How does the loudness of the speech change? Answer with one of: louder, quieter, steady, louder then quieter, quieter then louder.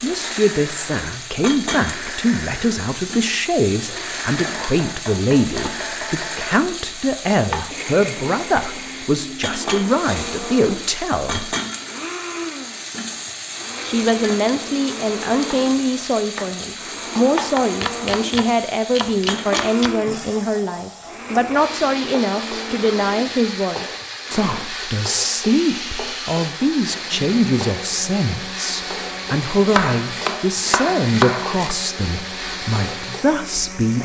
steady.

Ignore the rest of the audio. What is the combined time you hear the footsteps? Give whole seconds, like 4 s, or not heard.
not heard.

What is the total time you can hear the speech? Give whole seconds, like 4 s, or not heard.
32 s.